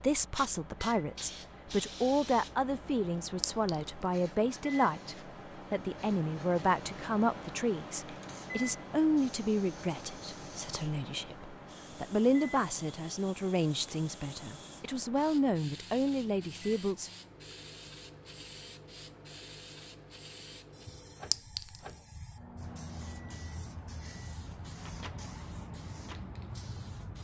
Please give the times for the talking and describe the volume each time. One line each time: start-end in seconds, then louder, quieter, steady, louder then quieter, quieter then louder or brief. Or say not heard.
0.0-17.1 steady.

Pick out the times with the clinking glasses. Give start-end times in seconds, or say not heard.
3.4-4.0, 21.3-21.9.